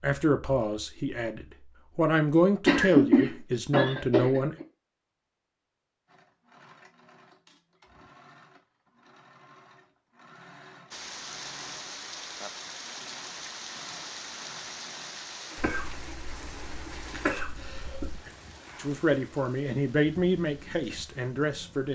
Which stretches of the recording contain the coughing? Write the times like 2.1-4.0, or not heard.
2.6-4.7, 15.6-18.3.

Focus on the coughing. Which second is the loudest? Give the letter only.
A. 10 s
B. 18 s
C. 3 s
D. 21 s
C.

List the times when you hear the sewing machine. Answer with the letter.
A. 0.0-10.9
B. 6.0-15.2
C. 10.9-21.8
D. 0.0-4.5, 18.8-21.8
B.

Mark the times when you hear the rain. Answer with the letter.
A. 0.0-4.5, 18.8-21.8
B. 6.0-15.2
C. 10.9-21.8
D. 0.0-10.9
C.